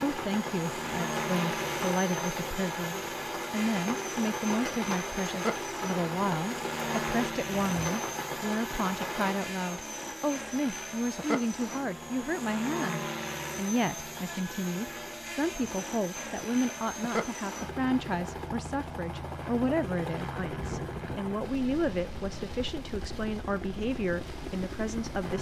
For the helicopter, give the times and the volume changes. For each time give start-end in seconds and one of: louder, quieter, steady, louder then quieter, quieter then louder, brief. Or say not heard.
0.0-25.3 steady.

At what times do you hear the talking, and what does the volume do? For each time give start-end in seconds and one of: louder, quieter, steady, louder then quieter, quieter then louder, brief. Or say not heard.
0.0-25.3 steady.